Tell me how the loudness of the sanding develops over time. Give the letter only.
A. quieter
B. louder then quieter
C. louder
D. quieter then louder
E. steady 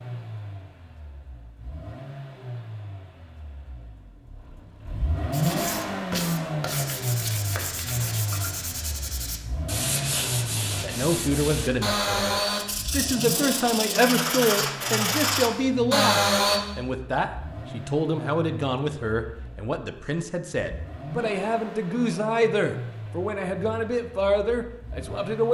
C.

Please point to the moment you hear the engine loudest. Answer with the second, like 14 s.
6 s.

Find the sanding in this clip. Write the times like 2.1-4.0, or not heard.
5.3-16.6.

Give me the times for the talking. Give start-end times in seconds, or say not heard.
10.8-25.4.